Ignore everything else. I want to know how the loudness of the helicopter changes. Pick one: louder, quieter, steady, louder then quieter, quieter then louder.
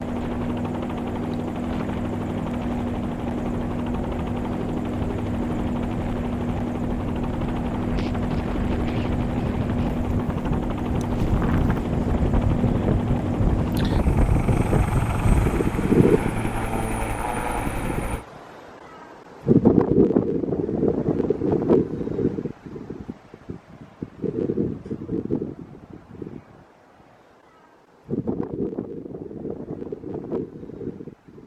steady.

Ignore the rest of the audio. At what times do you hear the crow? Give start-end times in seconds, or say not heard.
not heard.